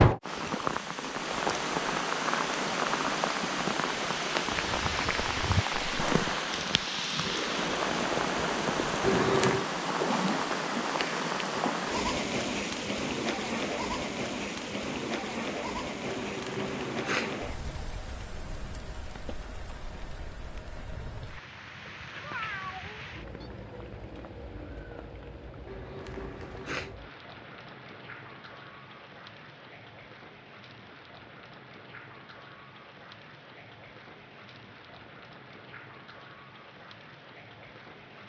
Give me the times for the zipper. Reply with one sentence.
The zipper can be heard from 9.0 to 9.7 s, from 16.1 to 17.4 s and from 25.6 to 27.0 s.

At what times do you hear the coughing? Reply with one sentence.
You can't hear the coughing here.